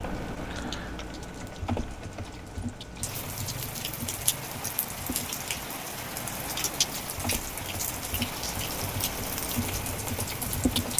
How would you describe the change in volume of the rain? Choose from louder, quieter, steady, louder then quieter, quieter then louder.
louder.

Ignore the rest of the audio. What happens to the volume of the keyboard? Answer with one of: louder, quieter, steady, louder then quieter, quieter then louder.
quieter then louder.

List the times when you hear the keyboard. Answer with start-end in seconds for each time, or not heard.
0.0-10.9.